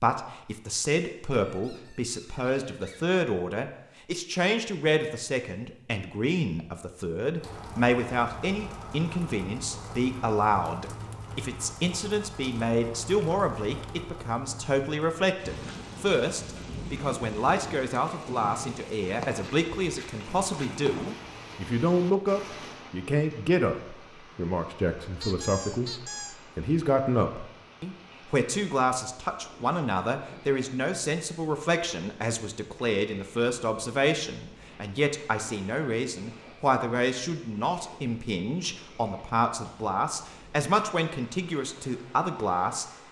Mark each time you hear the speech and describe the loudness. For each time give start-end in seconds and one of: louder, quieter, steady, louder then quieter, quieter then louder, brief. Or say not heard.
0.0-42.9 steady.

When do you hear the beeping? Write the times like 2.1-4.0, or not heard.
not heard.